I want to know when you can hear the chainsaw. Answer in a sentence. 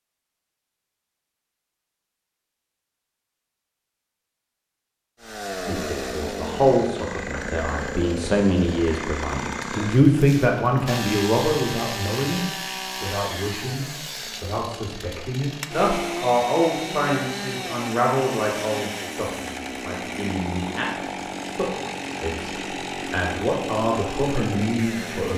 The chainsaw can be heard from 5.2 to 25.3 s.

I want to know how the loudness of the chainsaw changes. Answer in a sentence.
The loudness of the chainsaw stays about the same.